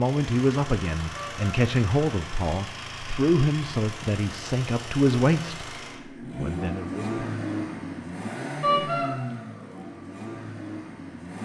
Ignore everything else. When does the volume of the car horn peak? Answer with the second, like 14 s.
9 s.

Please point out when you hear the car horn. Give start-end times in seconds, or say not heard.
1.1-1.6, 8.6-9.1.